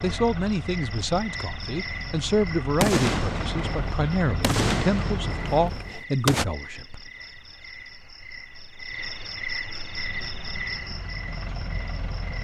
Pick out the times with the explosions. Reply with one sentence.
You can hear the explosions from 2.8 to 6.5 s.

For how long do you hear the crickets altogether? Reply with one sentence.
The crickets can be heard for 12 seconds in total.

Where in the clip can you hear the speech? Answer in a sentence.
You can hear the speech from 0.0 to 7.0 s.